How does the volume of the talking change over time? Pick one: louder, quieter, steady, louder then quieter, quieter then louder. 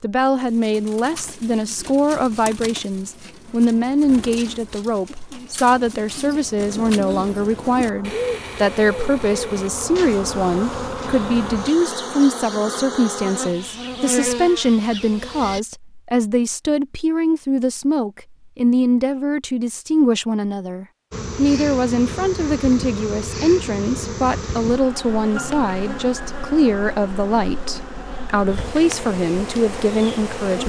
steady.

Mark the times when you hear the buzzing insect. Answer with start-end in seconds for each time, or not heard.
6.5-15.6, 21.1-30.6.